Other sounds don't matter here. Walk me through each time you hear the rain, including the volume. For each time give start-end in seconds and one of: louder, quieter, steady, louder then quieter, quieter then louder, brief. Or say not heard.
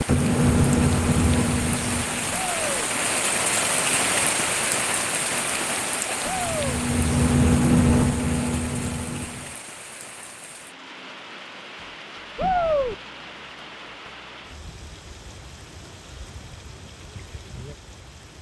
0.0-18.3 quieter.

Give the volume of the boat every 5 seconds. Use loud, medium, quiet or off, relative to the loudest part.
loud, loud, off, off.